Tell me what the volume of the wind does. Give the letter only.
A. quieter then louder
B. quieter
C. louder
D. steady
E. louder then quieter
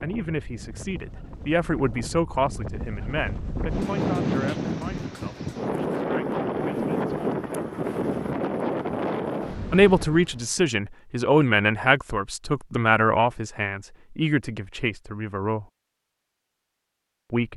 C.